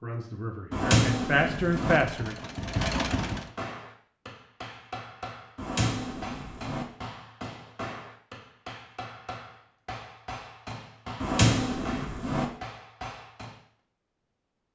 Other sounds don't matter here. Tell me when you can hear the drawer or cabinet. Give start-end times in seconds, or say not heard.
0.7-2.0, 5.5-6.8, 11.2-12.4.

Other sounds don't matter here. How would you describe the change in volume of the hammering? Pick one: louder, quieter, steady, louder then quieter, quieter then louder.
steady.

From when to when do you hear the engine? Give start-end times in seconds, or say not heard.
1.6-3.5.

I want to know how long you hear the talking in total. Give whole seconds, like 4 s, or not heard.
2 s.